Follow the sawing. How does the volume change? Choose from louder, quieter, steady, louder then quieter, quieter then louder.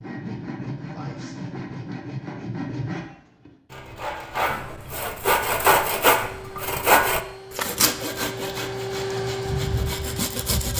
louder then quieter.